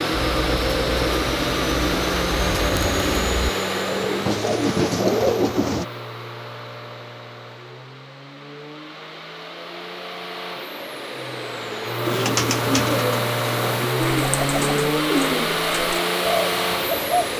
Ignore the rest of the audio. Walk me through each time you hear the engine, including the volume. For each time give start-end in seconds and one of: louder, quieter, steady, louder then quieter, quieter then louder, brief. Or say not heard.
0.0-17.3 quieter then louder.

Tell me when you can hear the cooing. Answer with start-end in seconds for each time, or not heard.
0.1-5.8, 12.1-17.3.